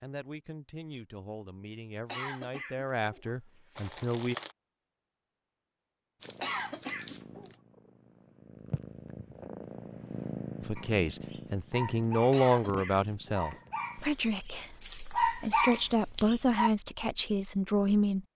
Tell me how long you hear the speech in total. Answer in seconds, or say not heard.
12 s.